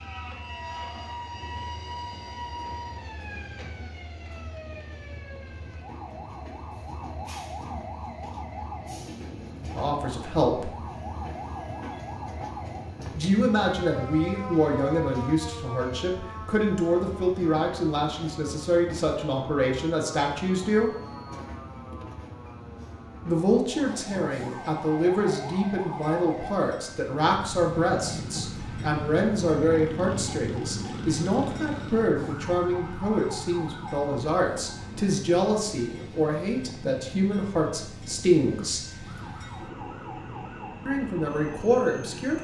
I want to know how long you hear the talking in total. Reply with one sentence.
The talking can be heard for 26 seconds in total.